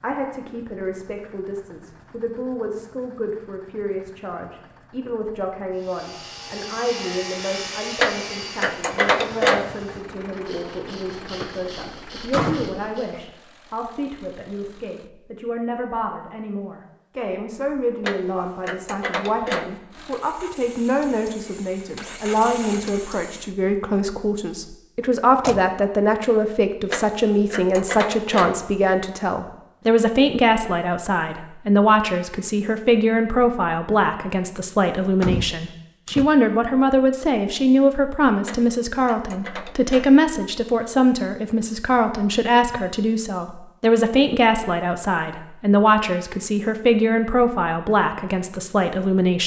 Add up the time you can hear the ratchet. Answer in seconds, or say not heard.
7 s.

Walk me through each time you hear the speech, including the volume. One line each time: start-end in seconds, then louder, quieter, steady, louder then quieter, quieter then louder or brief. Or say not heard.
0.0-49.4 louder.